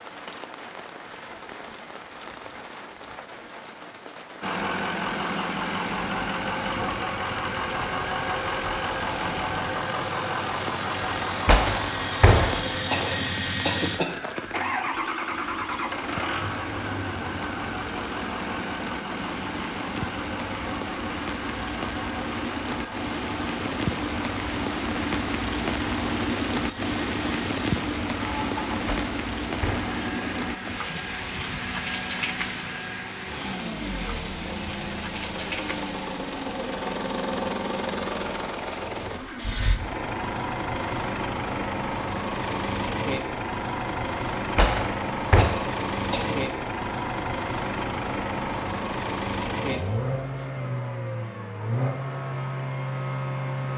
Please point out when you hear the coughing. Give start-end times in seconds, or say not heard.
12.9-14.2, 45.4-46.4.